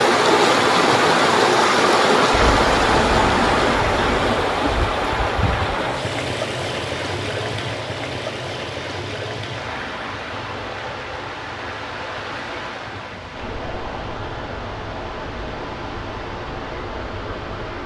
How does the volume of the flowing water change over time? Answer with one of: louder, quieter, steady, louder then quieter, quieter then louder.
quieter.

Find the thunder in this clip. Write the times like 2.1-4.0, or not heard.
2.3-4.3.